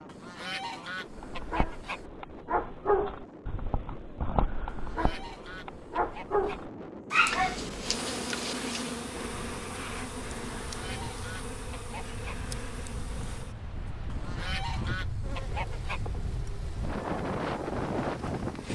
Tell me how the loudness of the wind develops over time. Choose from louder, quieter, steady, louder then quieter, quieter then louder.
louder.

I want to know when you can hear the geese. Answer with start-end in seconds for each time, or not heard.
0.1-2.0, 4.7-6.7, 10.7-12.4, 14.1-16.1.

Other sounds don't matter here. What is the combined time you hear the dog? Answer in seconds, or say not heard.
8 s.